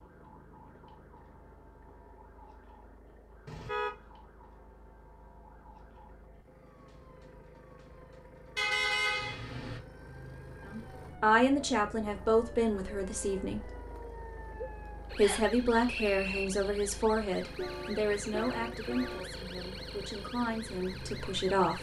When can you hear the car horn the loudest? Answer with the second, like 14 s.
9 s.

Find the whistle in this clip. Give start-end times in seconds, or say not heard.
15.2-16.4.